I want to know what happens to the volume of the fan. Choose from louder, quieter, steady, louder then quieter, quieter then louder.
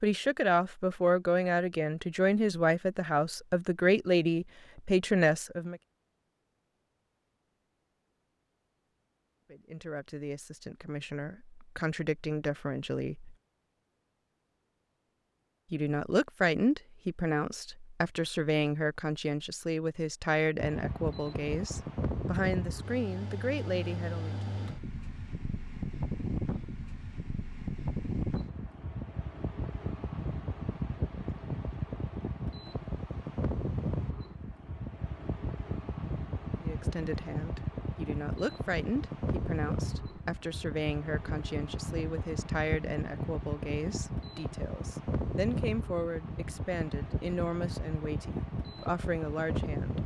steady.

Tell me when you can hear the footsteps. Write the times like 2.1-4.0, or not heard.
not heard.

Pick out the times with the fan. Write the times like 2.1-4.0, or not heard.
20.6-50.0.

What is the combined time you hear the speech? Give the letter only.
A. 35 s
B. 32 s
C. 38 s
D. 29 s
B.